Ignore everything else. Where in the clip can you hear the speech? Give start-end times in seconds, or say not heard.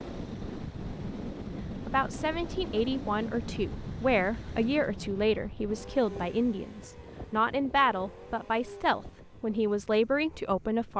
1.9-10.9.